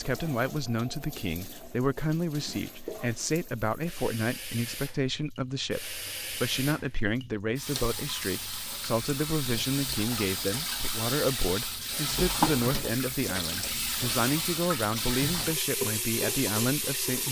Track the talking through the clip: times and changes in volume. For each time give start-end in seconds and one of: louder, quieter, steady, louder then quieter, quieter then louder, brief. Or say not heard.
0.0-17.2 steady.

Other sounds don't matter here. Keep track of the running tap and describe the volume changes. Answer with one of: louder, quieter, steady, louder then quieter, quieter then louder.
louder.